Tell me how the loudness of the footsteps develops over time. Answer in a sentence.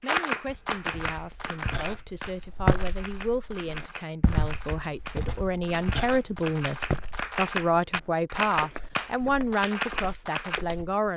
The volume of the footsteps goes down.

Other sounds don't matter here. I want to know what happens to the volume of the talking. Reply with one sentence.
The volume of the talking goes up.